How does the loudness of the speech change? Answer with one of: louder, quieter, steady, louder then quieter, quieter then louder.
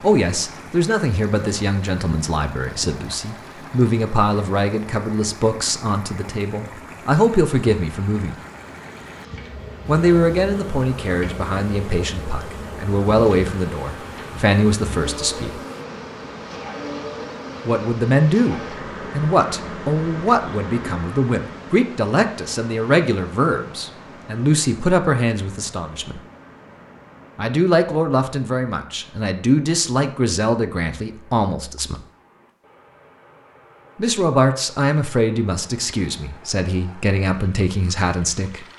steady.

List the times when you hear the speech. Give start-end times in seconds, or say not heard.
0.0-8.3, 9.8-15.6, 17.6-26.2, 27.4-32.0, 34.0-38.6.